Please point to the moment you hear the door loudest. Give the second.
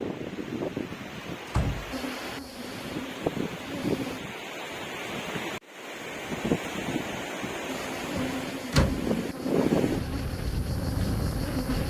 9 s.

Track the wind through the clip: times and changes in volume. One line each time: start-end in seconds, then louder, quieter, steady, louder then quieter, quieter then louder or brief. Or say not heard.
0.0-11.8 louder.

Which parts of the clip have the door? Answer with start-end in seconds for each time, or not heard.
1.4-2.4, 8.2-9.1.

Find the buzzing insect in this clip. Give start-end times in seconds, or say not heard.
1.9-4.2, 7.7-11.8.